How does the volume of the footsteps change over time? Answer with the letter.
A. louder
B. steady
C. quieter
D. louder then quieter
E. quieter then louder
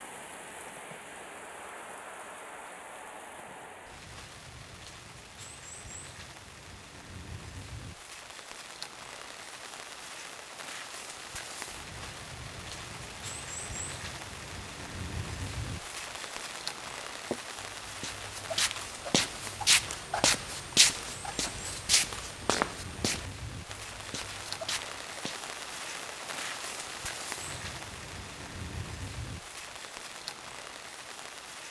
D.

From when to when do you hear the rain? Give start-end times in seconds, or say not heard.
0.0-31.6.